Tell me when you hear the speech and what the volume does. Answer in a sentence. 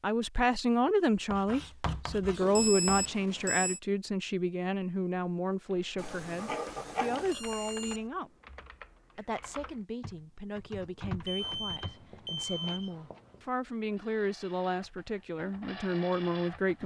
The speech can be heard from 0.0 to 8.3 s, getting quieter; and from 9.2 to 16.8 s, getting louder.